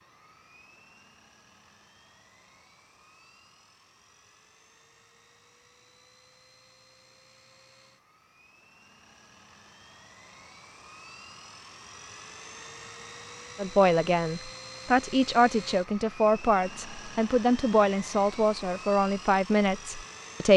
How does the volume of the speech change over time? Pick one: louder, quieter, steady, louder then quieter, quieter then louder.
steady.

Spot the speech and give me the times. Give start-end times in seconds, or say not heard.
13.6-20.5.